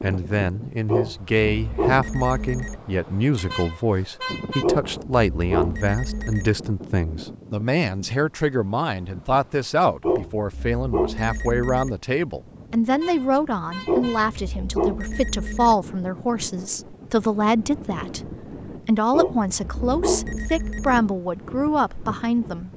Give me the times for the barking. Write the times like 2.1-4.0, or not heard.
0.8-2.8, 4.6-6.5, 10.0-11.9, 13.8-15.8, 19.1-21.0.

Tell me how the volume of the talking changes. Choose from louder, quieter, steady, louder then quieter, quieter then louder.
steady.